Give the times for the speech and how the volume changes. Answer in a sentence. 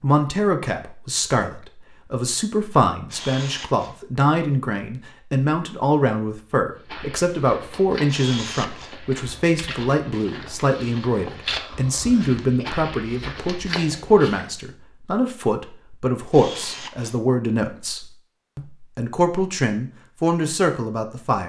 You can hear the speech from 0.0 to 21.4 s, at a steady volume.